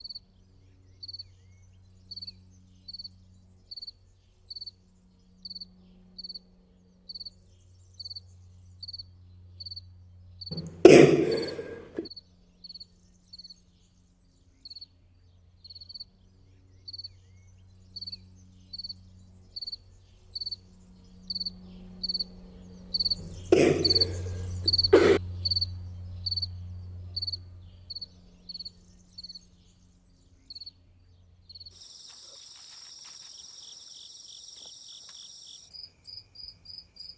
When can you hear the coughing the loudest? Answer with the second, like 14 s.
11 s.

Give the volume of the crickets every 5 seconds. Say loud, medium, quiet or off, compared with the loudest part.
quiet, quiet, quiet, quiet, loud, loud, quiet, quiet.